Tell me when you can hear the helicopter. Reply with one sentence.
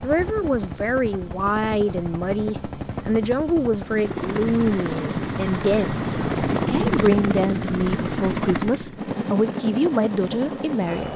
You can hear the helicopter from 0.0 to 11.1 s.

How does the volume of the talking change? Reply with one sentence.
The loudness of the talking stays about the same.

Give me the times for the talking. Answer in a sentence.
The talking can be heard from 0.0 to 11.1 s.